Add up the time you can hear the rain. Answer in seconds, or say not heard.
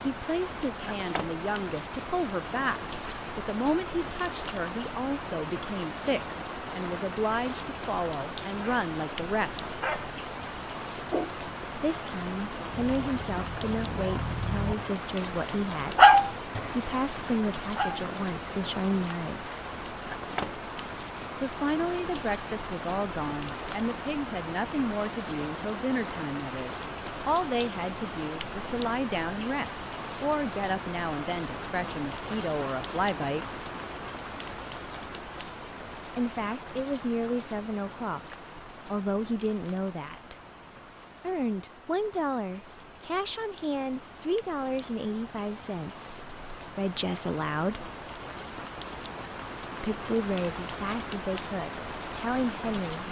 53 s.